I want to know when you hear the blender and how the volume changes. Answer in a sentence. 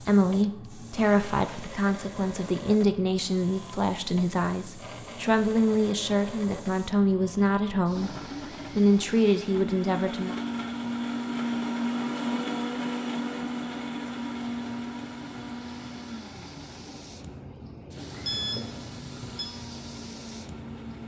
You can hear the blender from 0.2 to 21.0 s, getting louder then quieter.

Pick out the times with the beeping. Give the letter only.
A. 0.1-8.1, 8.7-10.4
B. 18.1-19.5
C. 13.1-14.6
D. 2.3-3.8
B.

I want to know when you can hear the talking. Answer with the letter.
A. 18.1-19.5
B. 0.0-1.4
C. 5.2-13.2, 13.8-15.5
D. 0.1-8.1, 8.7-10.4
D.